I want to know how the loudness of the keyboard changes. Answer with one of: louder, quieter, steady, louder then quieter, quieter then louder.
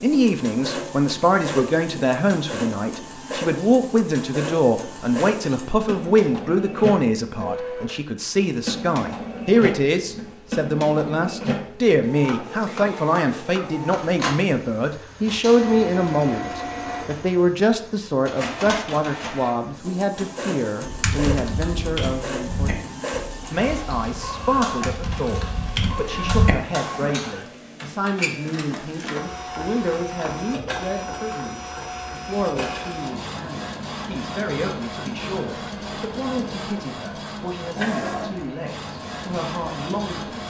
quieter then louder.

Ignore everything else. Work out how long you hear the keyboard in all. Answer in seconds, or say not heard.
6 s.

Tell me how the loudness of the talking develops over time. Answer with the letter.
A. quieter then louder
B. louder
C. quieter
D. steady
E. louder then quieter
C.